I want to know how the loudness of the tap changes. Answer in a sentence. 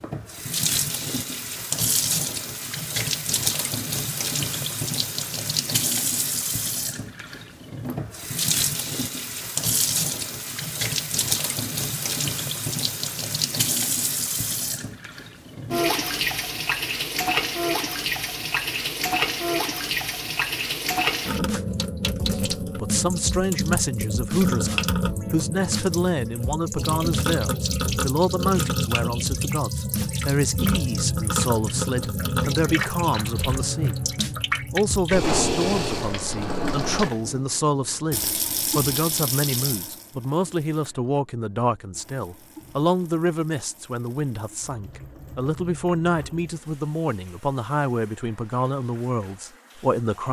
The volume of the tap goes down.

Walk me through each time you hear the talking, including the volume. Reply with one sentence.
You can hear the talking from 22.2 to 34.0 s, at a steady volume; and from 34.7 to 50.2 s, at a steady volume.